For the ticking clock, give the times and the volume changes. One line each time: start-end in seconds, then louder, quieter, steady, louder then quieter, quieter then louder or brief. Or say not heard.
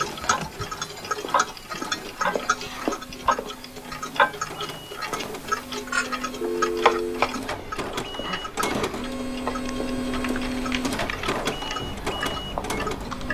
0.0-13.2 quieter.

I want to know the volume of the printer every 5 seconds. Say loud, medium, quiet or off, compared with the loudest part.
quiet, loud, loud.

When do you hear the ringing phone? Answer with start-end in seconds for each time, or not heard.
6.4-7.2.